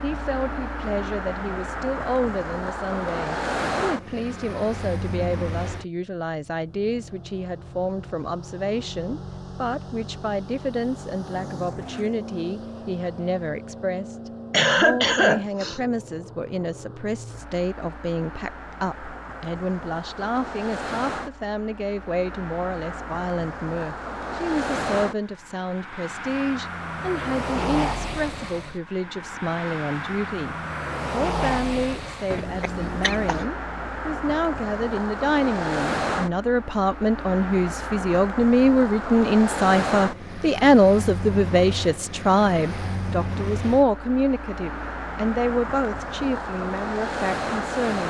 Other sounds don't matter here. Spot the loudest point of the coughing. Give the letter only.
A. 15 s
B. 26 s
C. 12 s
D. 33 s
A.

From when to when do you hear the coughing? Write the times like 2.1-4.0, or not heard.
14.5-15.8, 32.3-33.5.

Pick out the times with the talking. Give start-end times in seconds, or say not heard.
0.0-48.0.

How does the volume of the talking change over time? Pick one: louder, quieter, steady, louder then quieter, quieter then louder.
louder.